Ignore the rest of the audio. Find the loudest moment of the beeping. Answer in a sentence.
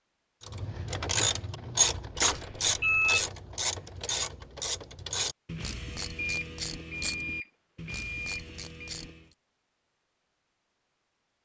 The volume of the beeping peaks at 3 seconds.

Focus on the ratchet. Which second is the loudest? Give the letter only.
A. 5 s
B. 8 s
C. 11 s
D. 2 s
D.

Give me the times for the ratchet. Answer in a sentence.
The ratchet can be heard from 0.5 to 9.3 s.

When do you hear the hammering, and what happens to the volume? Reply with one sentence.
The hammering can't be heard in this clip.